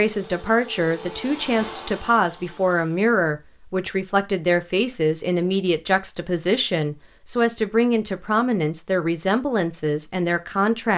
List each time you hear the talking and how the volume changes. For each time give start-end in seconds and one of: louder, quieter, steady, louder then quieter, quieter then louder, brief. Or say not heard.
0.0-10.9 steady.